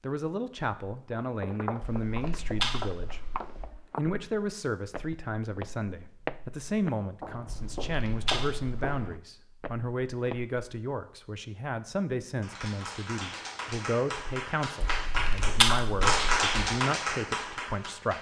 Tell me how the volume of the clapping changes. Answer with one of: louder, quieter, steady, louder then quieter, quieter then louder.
louder then quieter.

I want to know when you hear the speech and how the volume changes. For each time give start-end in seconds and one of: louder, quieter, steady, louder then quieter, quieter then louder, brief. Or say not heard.
0.0-18.1 steady.